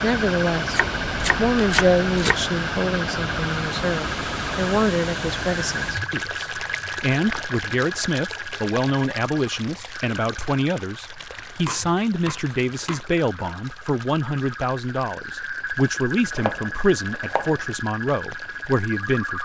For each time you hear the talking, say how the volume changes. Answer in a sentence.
You can hear the talking from 0.0 to 19.4 s, at a steady volume.